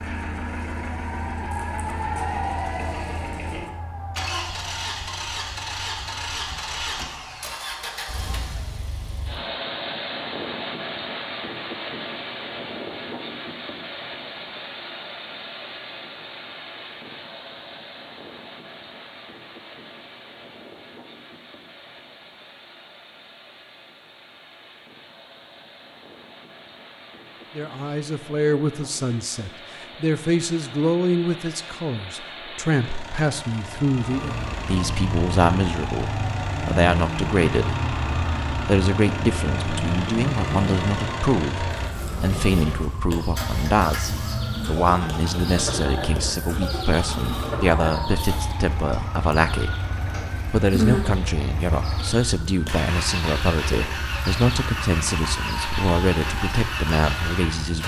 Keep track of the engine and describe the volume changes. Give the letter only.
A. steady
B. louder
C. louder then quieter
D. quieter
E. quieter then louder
E.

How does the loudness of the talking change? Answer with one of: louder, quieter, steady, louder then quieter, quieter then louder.
steady.